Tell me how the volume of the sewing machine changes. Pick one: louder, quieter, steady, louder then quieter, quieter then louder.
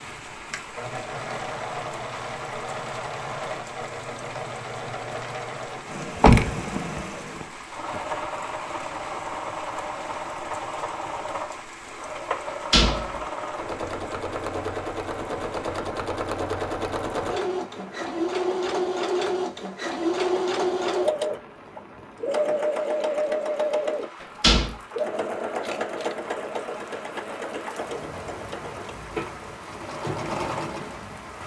louder then quieter.